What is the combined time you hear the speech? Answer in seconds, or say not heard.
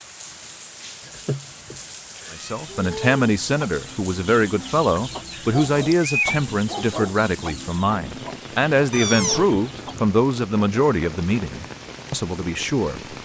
11 s.